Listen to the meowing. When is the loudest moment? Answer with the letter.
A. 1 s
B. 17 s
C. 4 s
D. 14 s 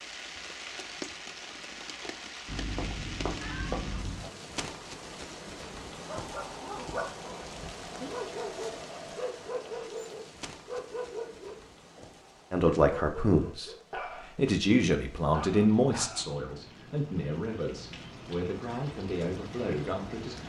C.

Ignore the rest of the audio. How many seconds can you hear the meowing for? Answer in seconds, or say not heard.
2 s.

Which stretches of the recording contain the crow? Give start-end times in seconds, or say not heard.
not heard.